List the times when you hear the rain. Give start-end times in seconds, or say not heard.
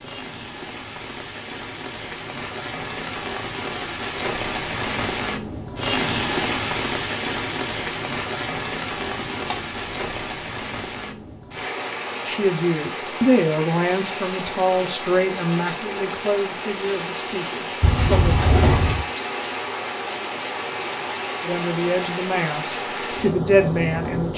0.0-24.3.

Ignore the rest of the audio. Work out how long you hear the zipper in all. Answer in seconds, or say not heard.
2 s.